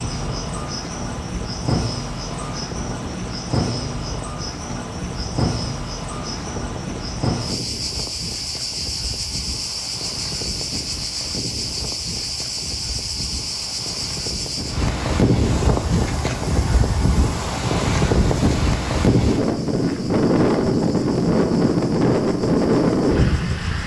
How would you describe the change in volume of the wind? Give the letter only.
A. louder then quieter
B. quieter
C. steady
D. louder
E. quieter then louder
D.